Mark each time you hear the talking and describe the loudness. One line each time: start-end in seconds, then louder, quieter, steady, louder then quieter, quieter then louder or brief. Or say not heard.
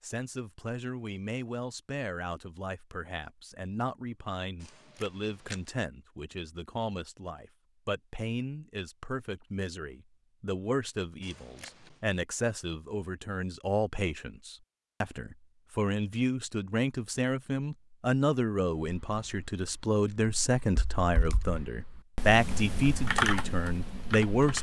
0.0-24.5 louder.